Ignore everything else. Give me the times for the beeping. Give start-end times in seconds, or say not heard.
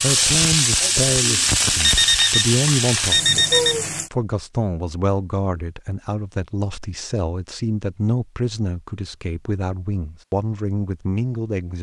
1.8-3.9.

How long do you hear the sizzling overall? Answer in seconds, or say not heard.
4 s.